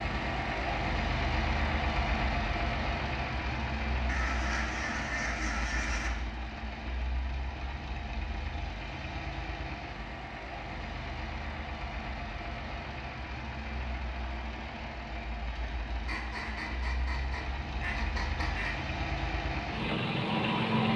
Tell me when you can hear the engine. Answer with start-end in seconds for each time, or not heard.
0.0-20.9.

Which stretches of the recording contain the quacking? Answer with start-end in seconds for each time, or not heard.
4.0-6.1, 16.1-18.8.